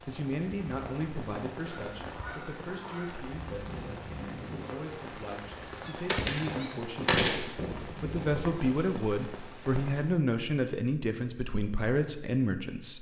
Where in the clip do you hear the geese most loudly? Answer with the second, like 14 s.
7 s.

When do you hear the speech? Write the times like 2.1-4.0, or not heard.
0.1-12.9.